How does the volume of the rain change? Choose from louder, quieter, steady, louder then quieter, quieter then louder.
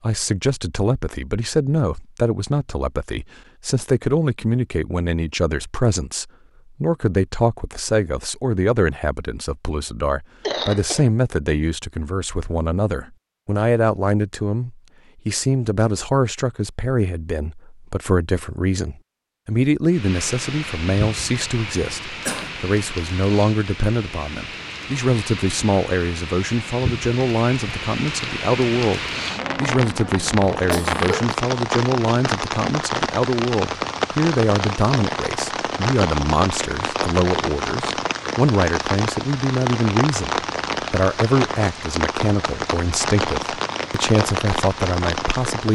louder.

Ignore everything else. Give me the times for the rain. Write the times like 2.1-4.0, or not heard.
19.9-45.7.